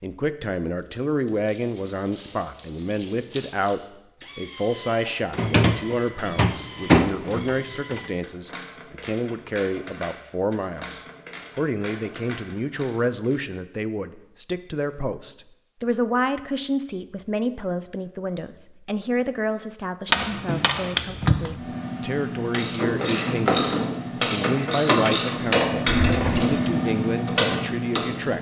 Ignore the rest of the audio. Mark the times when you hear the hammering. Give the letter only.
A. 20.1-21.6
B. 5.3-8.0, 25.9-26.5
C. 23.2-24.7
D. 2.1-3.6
A.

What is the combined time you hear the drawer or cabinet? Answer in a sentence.
The drawer or cabinet can be heard for 3 seconds in total.